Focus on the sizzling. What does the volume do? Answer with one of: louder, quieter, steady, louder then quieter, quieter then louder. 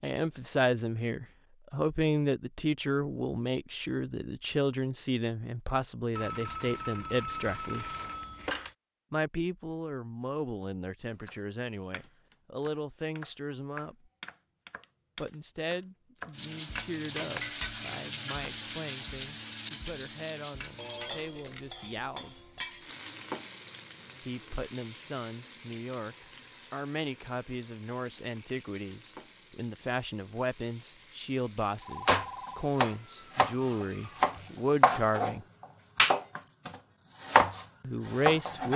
quieter.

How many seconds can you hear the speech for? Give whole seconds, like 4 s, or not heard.
32 s.